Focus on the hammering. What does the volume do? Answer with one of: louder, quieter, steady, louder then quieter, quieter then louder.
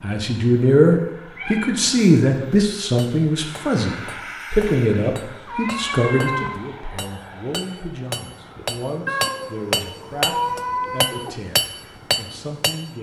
louder.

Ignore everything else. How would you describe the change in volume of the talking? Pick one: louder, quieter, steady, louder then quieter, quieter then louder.
quieter.